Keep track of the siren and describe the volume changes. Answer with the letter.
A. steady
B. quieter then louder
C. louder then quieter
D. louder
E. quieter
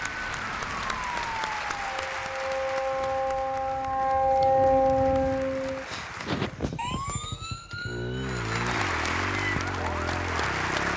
C.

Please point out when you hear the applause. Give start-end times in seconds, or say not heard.
0.0-6.7, 8.2-10.9.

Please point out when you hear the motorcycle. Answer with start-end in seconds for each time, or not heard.
4.8-10.9.